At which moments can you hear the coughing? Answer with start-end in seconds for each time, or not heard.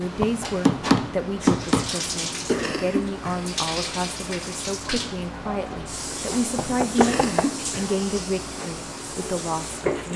2.5-3.4, 7.0-7.9.